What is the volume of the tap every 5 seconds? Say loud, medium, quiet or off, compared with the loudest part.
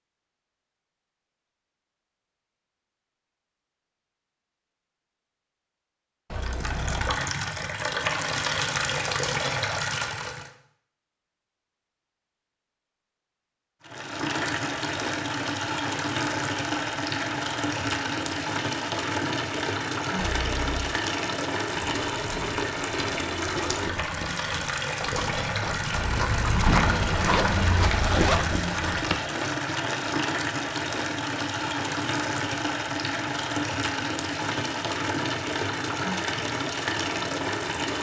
off, loud, loud, loud, loud, loud, loud, loud.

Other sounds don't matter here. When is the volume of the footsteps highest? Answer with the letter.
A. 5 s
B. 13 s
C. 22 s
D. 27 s
D.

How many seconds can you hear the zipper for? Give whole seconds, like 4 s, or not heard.
4 s.